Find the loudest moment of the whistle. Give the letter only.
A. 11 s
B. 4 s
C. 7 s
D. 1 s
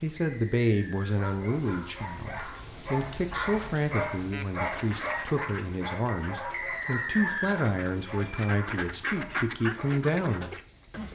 C.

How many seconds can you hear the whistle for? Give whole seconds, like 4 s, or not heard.
2 s.